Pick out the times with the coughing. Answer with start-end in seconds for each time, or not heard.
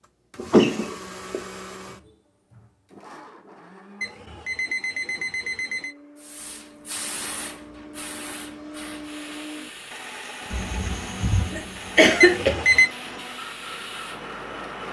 0.3-1.4, 10.5-12.5.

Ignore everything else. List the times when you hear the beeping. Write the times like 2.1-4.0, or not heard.
4.0-6.0, 12.2-12.9.